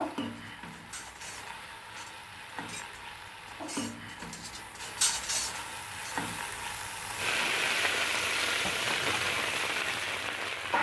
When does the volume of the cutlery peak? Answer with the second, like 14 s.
5 s.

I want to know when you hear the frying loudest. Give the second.
8 s.